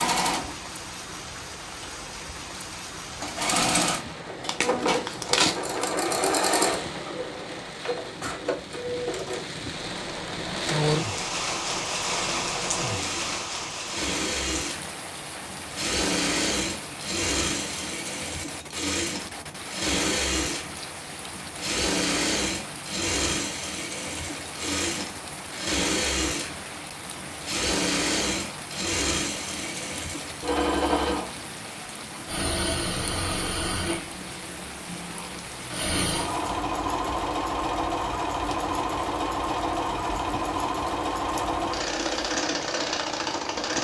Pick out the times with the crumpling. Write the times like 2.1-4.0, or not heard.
4.4-5.8.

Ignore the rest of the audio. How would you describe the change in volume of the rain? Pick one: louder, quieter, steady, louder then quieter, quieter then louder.
louder then quieter.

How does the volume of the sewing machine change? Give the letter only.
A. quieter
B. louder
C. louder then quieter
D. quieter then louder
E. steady
E.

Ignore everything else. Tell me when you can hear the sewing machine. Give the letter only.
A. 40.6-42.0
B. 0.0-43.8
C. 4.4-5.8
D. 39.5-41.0
B.